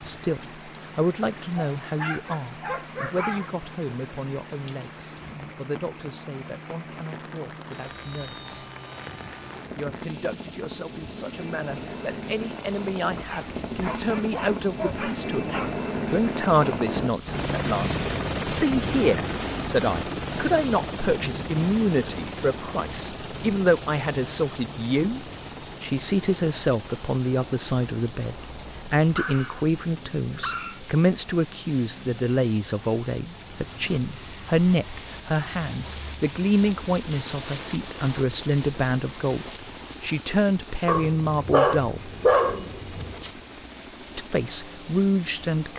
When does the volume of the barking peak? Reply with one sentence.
The volume of the barking peaks at 42 seconds.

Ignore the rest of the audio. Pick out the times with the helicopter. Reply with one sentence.
The helicopter can be heard from 0.0 to 45.7 s.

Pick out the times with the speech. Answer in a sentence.
The speech can be heard from 0.0 to 8.7 s, from 9.8 to 15.5 s, from 16.1 to 42.0 s and from 44.1 to 45.7 s.